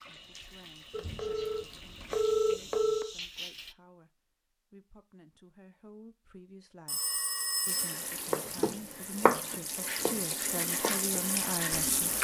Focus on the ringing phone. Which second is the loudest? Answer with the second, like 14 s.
2 s.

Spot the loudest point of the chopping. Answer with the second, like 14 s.
9 s.